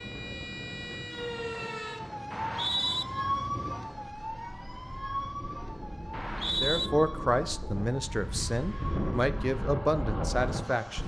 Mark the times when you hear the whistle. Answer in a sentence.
You can hear the whistle from 2.3 to 3.0 s and from 6.1 to 6.9 s.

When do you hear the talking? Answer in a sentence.
You can hear the talking from 6.6 to 11.0 s.